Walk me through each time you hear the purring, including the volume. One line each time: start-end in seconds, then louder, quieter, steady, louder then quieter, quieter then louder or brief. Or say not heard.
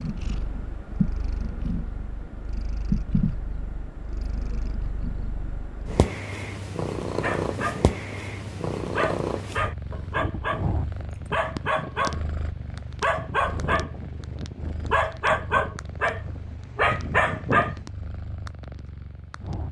0.0-19.6 quieter.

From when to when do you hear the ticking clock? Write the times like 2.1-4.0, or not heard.
not heard.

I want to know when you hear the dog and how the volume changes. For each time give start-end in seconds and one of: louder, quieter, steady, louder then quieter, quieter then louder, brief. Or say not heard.
7.2-17.9 louder.